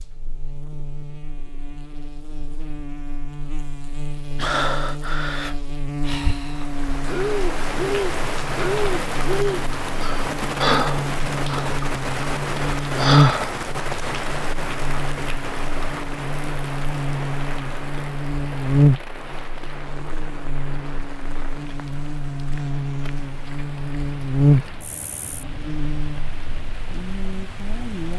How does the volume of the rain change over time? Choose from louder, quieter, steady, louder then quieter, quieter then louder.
quieter.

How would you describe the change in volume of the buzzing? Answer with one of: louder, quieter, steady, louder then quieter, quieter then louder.
louder.